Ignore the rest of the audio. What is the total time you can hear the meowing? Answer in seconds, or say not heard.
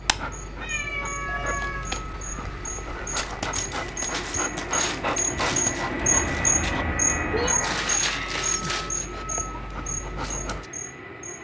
3 s.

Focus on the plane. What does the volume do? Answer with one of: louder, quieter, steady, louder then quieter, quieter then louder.
louder then quieter.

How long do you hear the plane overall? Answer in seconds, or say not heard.
11 s.